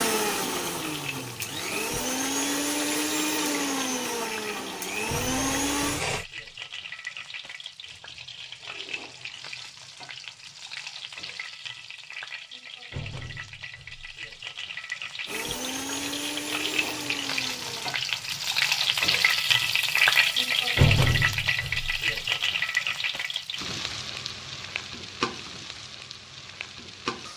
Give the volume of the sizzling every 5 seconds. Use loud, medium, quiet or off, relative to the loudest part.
quiet, quiet, quiet, loud, loud, medium.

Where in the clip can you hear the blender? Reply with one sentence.
The blender can be heard from 0.0 to 6.2 s and from 15.2 to 18.0 s.